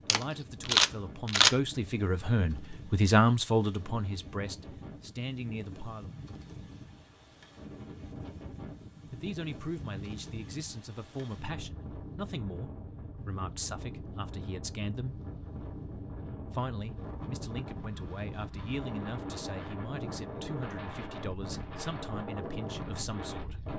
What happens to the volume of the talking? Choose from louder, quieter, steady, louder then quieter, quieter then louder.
quieter.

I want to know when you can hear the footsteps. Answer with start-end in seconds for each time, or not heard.
not heard.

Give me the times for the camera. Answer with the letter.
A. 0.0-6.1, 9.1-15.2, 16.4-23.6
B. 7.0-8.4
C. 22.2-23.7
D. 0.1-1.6
D.